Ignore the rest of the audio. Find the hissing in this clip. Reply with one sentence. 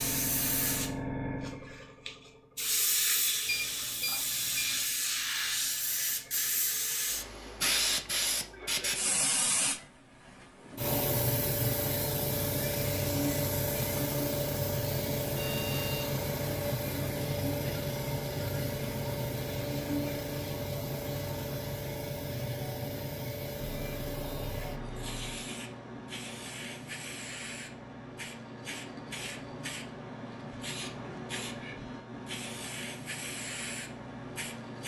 You can hear the hissing from 0.0 to 34.8 s.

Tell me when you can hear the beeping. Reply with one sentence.
The beeping can be heard from 3.5 to 4.8 s, from 15.3 to 16.2 s and from 23.6 to 25.4 s.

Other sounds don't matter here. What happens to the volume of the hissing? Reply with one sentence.
The volume of the hissing goes down.